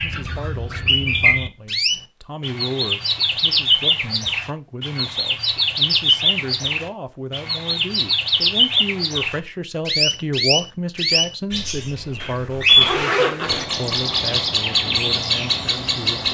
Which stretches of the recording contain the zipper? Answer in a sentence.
You can hear the zipper from 12.2 to 13.7 s.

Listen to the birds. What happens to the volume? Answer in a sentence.
The volume of the birds stays about the same.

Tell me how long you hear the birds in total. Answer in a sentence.
The birds can be heard for 16 seconds in total.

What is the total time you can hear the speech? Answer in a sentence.
The speech can be heard for 16 seconds in total.